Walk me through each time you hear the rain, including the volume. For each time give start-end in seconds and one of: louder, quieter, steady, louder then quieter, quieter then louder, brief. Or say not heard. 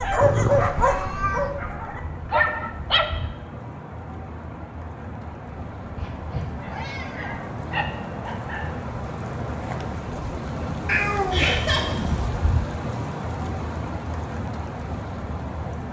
0.0-15.8 louder.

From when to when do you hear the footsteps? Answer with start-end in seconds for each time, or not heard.
not heard.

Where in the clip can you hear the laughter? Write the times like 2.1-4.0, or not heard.
11.3-11.9.